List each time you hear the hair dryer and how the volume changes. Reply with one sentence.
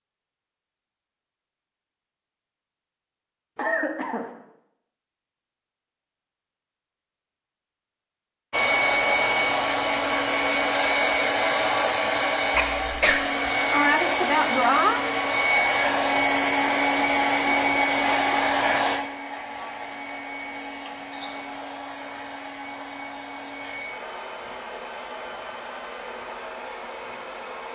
The hair dryer can be heard from 8.5 to 27.7 s, getting quieter.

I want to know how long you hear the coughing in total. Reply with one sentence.
The coughing can be heard for 2 seconds in total.